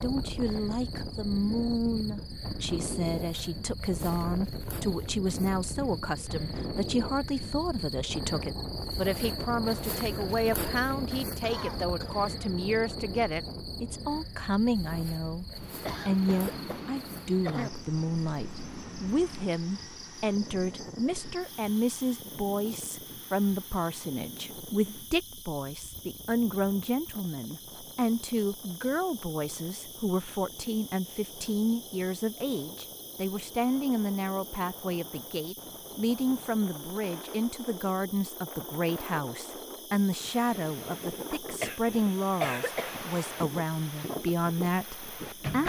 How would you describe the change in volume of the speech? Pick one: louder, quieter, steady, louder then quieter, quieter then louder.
steady.